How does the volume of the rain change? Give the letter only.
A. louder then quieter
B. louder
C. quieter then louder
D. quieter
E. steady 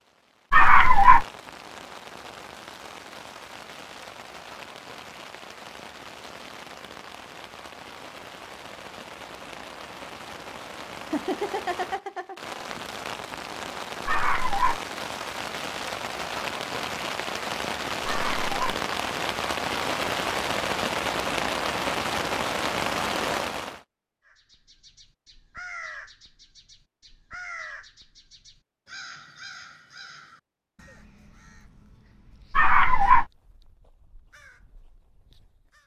B.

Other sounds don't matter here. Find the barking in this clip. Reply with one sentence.
You can hear the barking from 0.5 to 1.2 s, from 14.1 to 14.8 s, from 18.1 to 18.5 s and from 32.5 to 33.2 s.